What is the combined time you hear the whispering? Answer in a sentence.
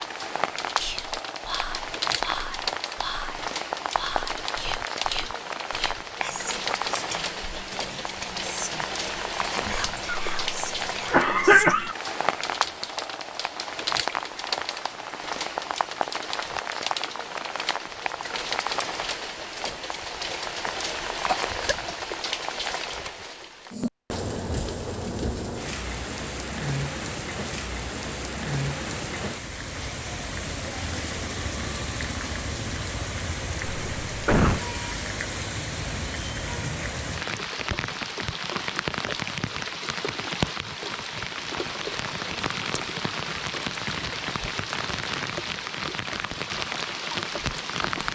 You can hear the whispering for 11 seconds altogether.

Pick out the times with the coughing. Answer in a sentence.
You can hear the coughing from 10.1 to 11.9 s, from 20.6 to 21.9 s and from 33.6 to 34.6 s.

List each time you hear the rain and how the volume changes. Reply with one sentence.
You can hear the rain from 0.0 to 48.1 s, at a steady volume.